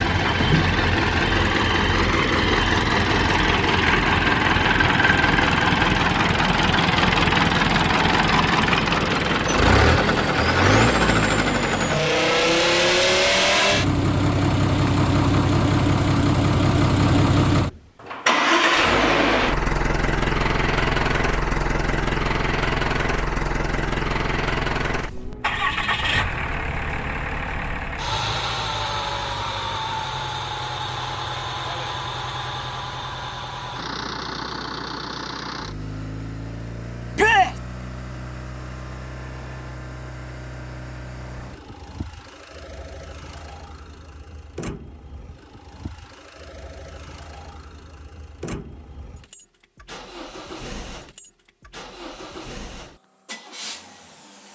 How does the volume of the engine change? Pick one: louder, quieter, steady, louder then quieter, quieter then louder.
quieter.